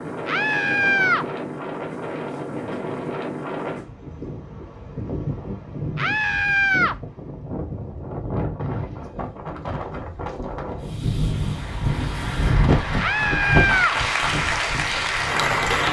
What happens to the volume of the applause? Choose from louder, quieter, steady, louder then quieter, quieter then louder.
louder.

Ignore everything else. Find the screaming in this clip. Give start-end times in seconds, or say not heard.
0.2-1.2, 6.0-7.0, 12.9-13.9.